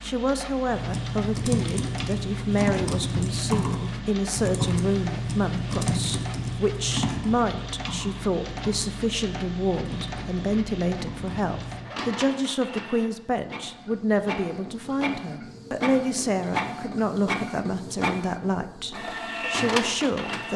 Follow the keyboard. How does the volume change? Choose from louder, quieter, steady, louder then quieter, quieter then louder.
quieter.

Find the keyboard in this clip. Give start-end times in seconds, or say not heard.
0.7-11.9.